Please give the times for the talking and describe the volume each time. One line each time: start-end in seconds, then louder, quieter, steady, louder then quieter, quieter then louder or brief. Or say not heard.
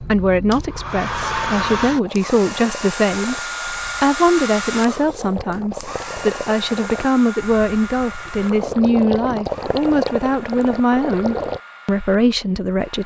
0.0-13.0 steady.